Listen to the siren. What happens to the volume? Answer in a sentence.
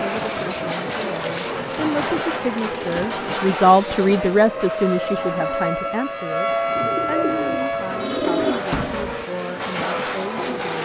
The volume of the siren goes up, then down.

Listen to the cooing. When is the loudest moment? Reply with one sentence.
The loudest moment of the cooing is at 8 seconds.